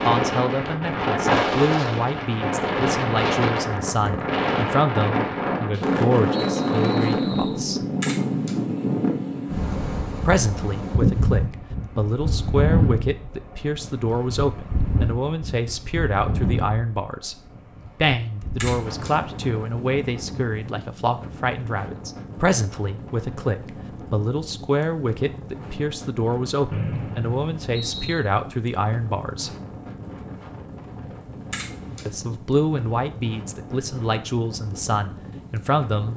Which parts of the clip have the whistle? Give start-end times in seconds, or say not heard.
6.3-7.6, 26.7-28.2.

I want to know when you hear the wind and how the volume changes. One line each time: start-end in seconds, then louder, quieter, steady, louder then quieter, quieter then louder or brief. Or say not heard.
0.0-36.1 quieter.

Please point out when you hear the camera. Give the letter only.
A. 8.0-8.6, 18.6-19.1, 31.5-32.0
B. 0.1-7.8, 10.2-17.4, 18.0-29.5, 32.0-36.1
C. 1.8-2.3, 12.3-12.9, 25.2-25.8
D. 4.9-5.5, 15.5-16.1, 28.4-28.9
A.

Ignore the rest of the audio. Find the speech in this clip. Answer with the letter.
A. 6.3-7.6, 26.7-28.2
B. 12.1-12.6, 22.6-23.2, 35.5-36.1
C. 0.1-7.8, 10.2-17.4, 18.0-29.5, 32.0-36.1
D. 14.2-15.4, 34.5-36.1
C.